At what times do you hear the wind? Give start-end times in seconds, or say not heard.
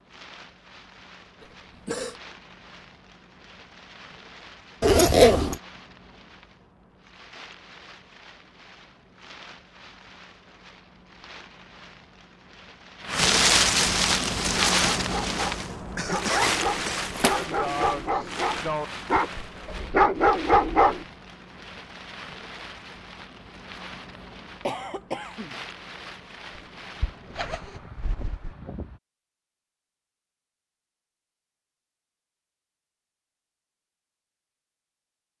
0.0-29.0.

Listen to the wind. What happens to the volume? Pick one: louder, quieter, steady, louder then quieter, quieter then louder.
louder then quieter.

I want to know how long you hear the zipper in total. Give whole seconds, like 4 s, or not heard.
4 s.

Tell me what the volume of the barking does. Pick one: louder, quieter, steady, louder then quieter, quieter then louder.
louder.